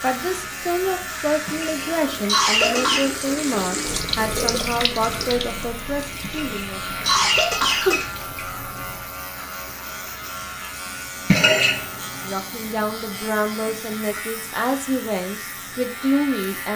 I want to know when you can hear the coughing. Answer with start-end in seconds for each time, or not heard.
1.4-3.1, 6.2-8.4, 11.3-11.8.